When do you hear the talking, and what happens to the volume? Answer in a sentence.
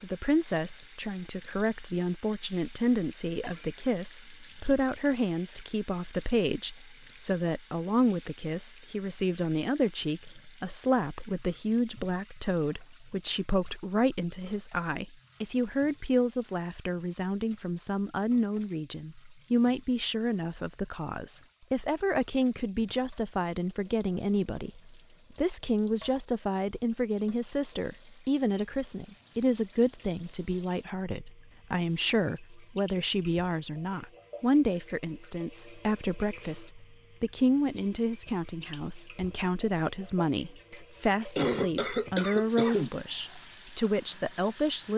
The talking can be heard from 0.0 to 44.9 s, at a steady volume.